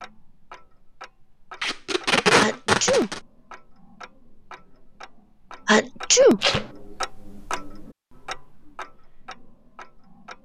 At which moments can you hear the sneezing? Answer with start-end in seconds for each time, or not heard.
2.4-3.1, 5.7-6.4.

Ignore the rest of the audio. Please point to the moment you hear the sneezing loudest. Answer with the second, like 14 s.
6 s.